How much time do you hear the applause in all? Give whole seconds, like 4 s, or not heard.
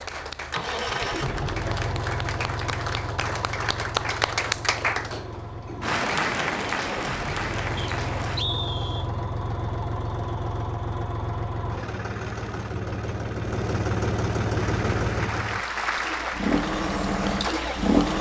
12 s.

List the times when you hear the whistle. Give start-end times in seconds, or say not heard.
7.8-9.1.